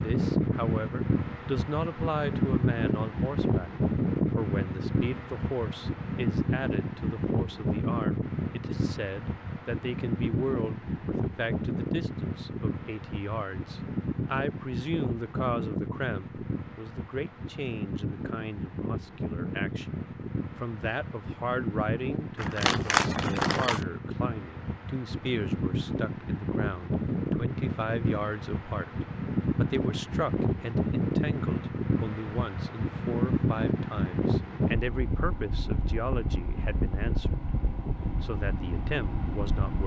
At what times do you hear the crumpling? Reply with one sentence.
The crumpling can be heard from 22.4 to 23.9 s.